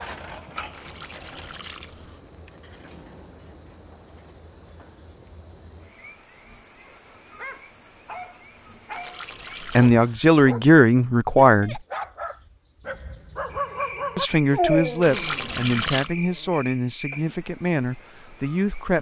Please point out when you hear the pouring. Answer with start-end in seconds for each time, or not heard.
0.7-2.2, 8.9-9.9, 15.0-16.1.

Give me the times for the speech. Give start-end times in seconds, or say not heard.
9.8-11.8, 14.2-18.9.